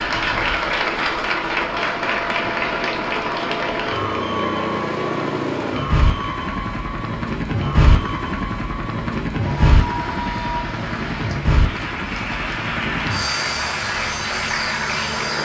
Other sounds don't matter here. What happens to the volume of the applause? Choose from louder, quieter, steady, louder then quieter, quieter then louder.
quieter then louder.